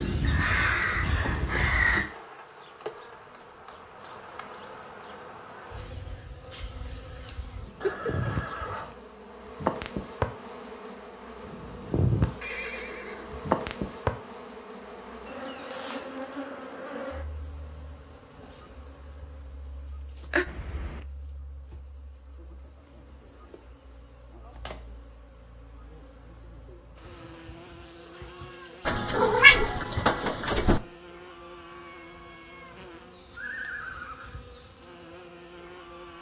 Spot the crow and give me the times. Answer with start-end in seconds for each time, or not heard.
0.0-2.0.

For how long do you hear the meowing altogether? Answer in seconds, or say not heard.
4 s.